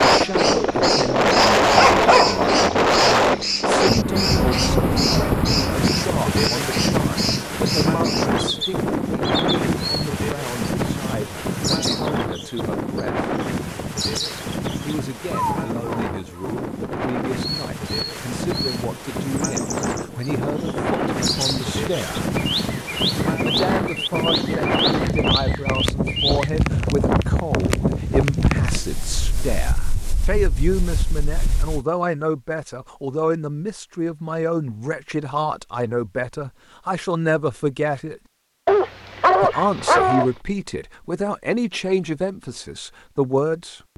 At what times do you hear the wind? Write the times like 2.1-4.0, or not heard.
0.0-31.9.